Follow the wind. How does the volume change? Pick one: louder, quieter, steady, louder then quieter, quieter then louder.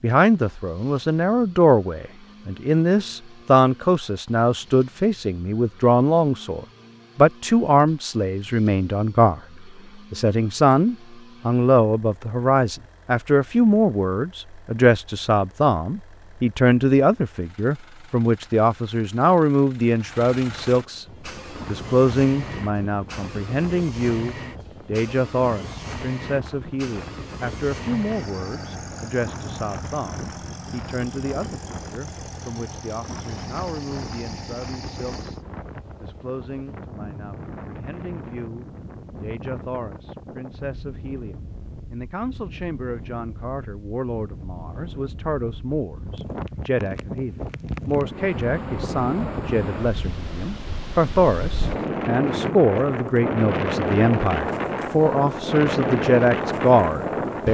louder.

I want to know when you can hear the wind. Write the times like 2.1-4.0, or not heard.
20.9-57.4.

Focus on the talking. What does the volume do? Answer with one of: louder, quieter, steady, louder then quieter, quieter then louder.
quieter then louder.